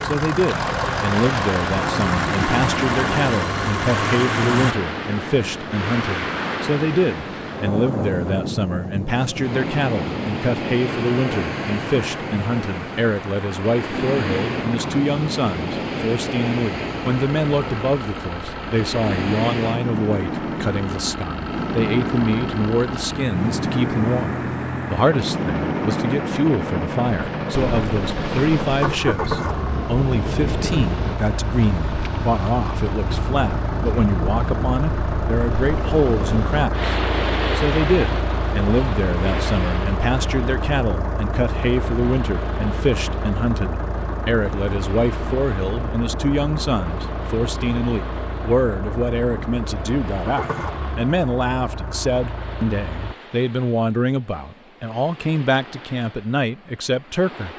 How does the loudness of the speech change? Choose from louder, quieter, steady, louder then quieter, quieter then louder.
steady.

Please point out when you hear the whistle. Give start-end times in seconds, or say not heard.
not heard.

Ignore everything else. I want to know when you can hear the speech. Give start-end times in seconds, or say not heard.
0.0-57.5.